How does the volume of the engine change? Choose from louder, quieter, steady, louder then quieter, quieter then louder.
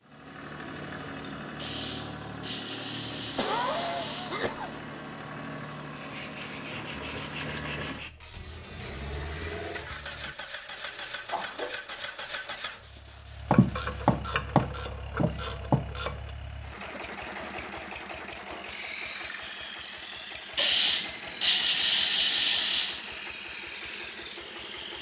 steady.